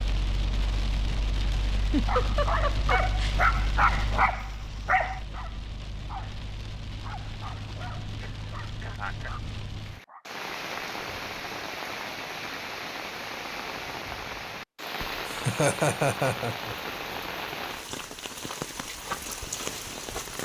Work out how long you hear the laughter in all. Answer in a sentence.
The laughter can be heard for 4 seconds in total.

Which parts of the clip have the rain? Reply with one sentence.
The rain can be heard from 0.0 to 20.4 s.